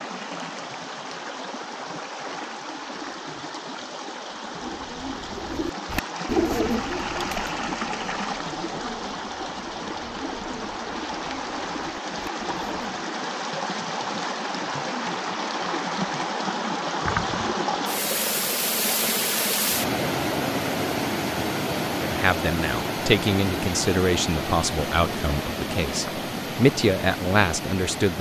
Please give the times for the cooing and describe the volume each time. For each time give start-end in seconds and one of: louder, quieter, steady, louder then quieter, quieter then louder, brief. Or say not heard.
4.5-13.1 quieter.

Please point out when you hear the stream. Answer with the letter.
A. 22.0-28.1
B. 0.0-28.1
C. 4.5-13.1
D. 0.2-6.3
B.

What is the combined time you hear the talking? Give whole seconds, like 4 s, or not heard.
6 s.